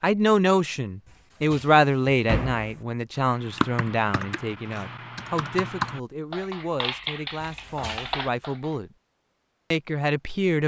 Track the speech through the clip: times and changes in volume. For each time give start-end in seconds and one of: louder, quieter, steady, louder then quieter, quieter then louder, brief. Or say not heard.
0.0-8.9 quieter
9.7-10.6 brief.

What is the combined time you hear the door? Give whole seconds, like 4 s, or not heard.
2 s.